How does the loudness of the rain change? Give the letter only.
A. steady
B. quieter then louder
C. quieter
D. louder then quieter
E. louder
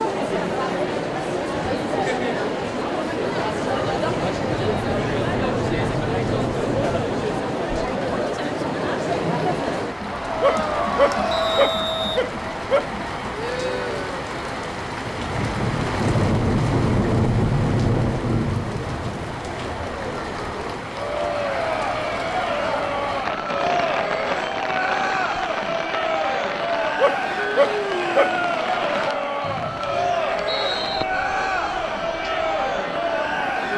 D.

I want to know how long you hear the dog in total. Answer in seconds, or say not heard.
4 s.